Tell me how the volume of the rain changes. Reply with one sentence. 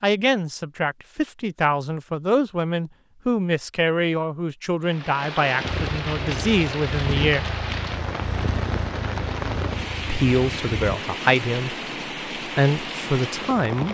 The loudness of the rain stays about the same.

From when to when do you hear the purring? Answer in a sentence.
The purring can be heard from 5.6 to 11.0 s.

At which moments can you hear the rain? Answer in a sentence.
The rain can be heard from 4.8 to 13.9 s.